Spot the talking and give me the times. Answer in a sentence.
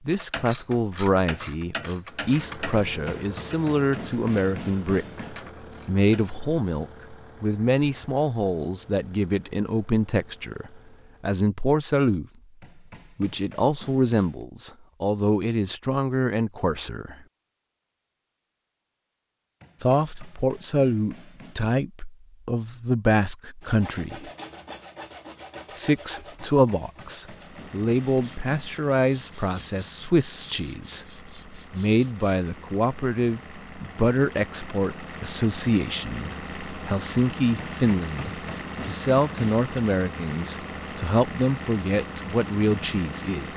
The talking can be heard from 0.1 to 12.2 s, from 13.2 to 17.1 s, from 19.8 to 24.3 s and from 25.8 to 43.5 s.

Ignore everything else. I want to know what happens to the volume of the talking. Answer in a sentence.
The volume of the talking stays about the same.